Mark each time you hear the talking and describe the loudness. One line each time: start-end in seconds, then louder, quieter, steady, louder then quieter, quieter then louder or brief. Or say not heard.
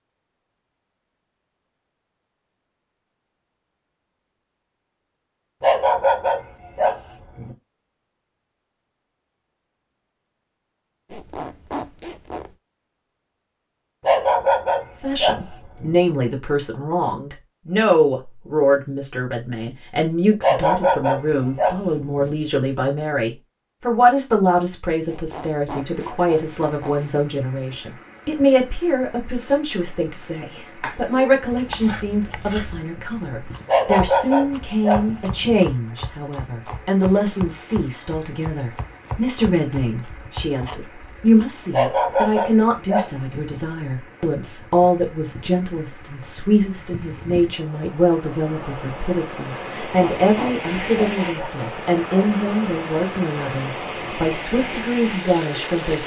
15.0-56.0 steady.